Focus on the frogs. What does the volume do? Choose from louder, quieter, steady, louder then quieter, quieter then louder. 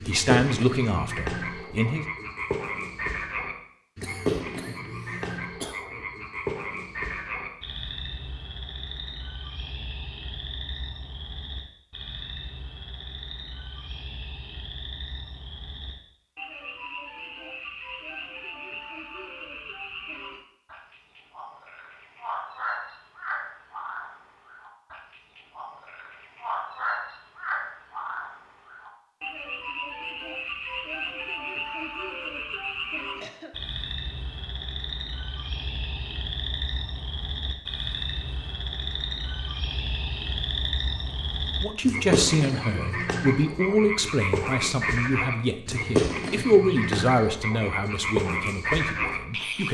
quieter then louder.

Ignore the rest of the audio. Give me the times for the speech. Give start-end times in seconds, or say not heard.
0.1-2.0, 41.6-49.6.